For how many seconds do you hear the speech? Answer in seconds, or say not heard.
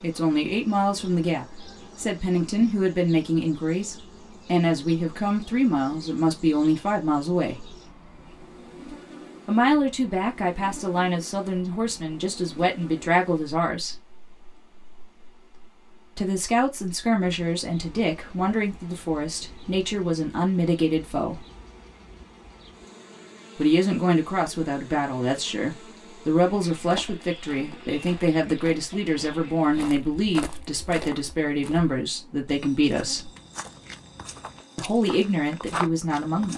29 s.